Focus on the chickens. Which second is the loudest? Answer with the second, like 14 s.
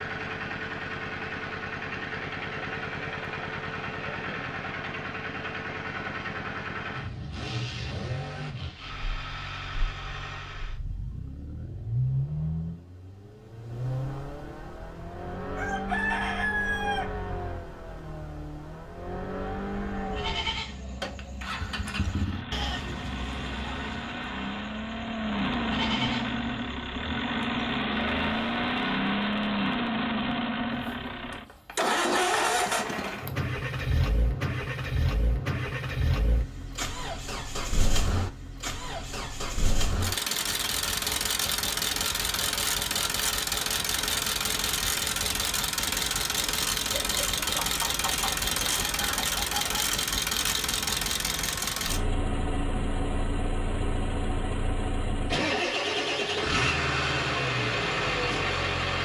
16 s.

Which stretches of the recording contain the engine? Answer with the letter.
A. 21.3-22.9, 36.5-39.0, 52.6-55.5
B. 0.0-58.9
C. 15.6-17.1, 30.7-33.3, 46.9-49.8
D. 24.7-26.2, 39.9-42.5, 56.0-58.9
B.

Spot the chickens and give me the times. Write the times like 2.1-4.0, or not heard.
15.6-17.1, 30.7-33.3, 46.9-49.8.